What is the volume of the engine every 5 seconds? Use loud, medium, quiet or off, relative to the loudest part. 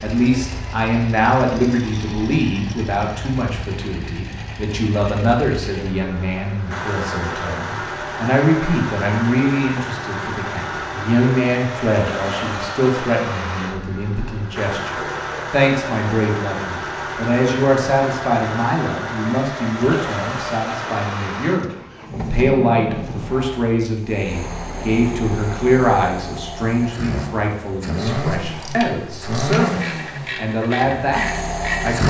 medium, loud, loud, loud, loud, loud, loud.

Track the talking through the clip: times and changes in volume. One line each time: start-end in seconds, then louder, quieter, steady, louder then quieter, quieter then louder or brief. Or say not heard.
0.0-32.0 steady.